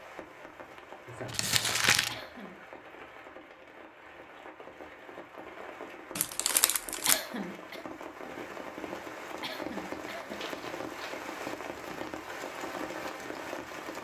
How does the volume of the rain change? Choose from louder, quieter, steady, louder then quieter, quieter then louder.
louder.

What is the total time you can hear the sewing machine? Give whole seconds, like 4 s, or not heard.
not heard.